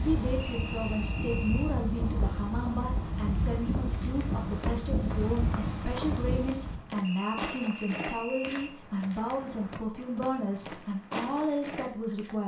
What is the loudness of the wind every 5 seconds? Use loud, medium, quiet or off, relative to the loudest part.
loud, loud, off.